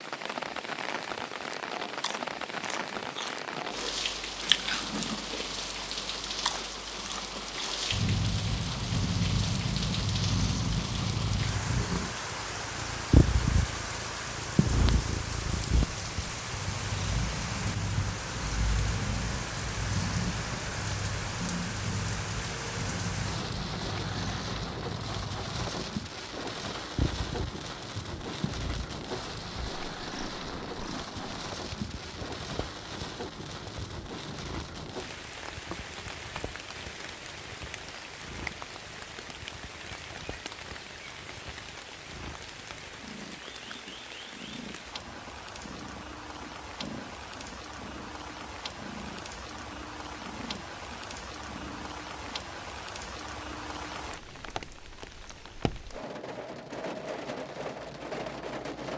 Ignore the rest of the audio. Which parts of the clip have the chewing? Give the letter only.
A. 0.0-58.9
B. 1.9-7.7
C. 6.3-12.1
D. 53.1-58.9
B.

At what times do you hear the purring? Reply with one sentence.
You can hear the purring from 7.9 to 52.5 s.